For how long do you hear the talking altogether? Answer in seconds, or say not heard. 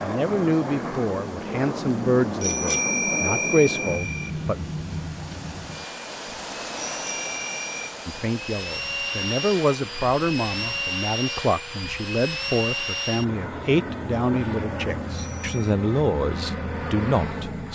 14 s.